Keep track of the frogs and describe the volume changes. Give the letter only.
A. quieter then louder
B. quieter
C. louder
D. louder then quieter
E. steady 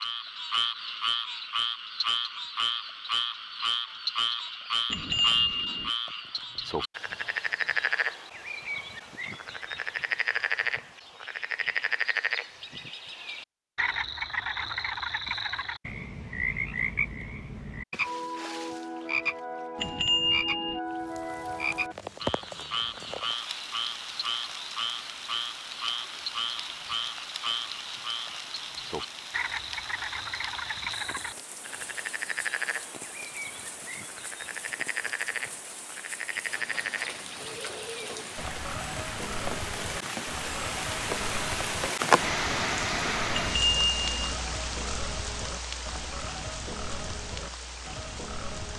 B.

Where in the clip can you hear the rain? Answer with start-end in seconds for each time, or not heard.
20.9-48.7.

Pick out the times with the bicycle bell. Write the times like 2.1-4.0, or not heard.
4.9-5.9, 19.8-20.8, 43.3-44.4.